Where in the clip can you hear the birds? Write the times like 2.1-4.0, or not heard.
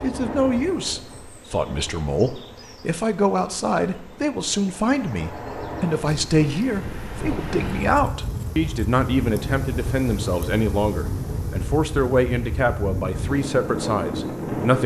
not heard.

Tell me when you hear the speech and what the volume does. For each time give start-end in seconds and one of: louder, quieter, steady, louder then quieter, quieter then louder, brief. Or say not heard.
0.0-14.8 steady.